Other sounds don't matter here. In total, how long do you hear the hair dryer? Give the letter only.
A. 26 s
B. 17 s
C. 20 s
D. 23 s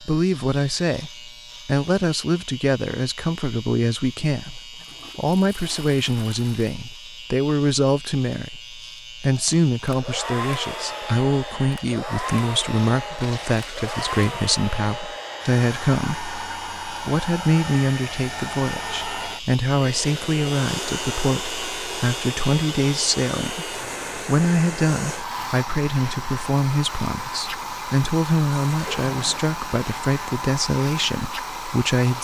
D.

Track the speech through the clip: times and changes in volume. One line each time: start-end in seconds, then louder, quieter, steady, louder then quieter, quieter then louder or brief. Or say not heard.
0.0-32.1 steady.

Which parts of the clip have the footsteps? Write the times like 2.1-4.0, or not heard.
not heard.